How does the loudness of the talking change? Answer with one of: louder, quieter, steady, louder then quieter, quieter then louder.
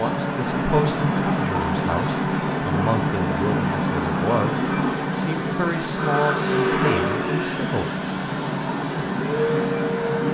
steady.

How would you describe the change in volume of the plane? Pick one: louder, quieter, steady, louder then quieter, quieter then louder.
steady.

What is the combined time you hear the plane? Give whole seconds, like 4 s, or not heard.
10 s.